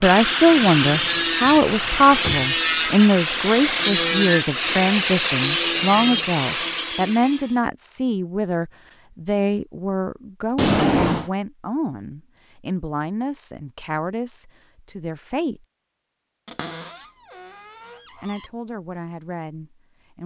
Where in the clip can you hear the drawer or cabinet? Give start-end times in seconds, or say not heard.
1.6-2.5, 10.6-11.3, 16.4-18.4.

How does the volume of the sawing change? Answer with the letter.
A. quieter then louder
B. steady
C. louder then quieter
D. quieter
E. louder
B.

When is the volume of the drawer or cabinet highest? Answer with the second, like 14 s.
11 s.